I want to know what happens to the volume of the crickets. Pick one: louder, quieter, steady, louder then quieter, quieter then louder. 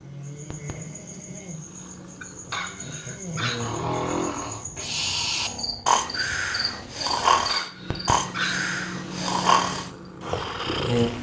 louder.